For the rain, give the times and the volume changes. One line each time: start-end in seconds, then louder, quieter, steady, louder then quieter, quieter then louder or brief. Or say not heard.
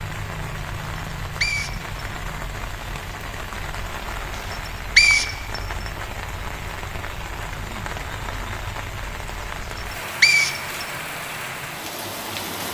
0.0-12.6 steady.